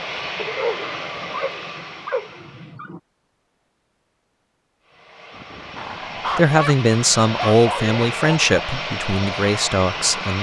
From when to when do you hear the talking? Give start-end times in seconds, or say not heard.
6.3-10.3.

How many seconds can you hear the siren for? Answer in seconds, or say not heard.
not heard.